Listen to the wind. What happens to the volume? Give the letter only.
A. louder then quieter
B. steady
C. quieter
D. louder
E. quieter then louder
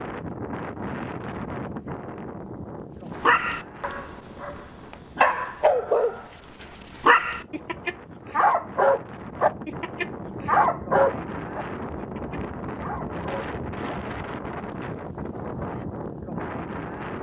E.